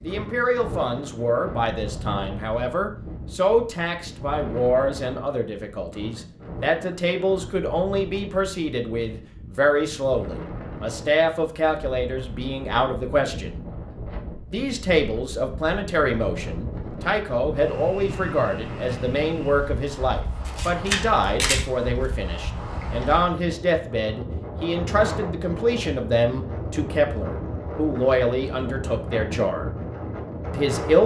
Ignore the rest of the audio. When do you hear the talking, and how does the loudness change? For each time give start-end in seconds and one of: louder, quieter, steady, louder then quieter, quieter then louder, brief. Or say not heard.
0.0-13.6 steady
14.5-29.7 steady
30.6-31.0 brief.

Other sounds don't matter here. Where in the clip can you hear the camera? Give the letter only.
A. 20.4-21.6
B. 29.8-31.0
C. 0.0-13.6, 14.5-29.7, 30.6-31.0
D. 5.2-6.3
A.